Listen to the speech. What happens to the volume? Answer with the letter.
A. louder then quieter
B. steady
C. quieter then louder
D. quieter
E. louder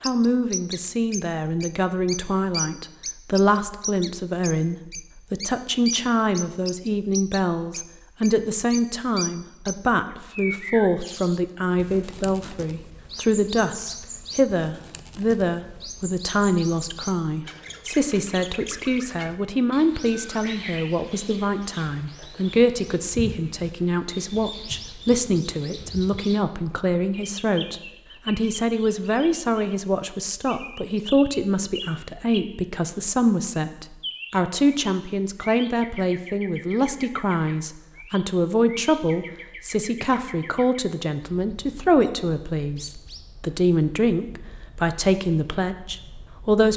B.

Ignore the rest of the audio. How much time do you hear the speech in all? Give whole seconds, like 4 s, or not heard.
47 s.